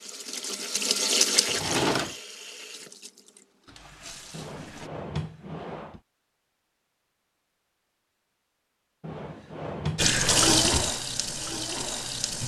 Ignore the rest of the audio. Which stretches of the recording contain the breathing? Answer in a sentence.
You can't hear the breathing here.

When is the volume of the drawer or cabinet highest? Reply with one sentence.
The loudest moment of the drawer or cabinet is at 2 seconds.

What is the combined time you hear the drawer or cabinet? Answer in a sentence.
You can hear the drawer or cabinet for 4 seconds altogether.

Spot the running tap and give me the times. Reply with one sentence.
The running tap can be heard from 0.0 to 4.9 s and from 9.9 to 12.4 s.